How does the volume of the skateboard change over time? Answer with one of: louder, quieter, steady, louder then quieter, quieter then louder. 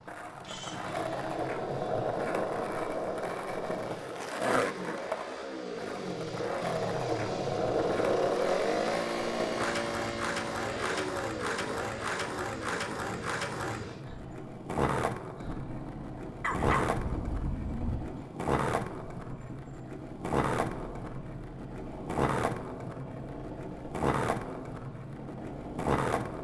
steady.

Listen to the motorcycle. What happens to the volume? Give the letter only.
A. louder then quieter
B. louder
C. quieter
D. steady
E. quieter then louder
A.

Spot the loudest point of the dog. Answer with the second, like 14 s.
17 s.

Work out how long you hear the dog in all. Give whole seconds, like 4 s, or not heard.
2 s.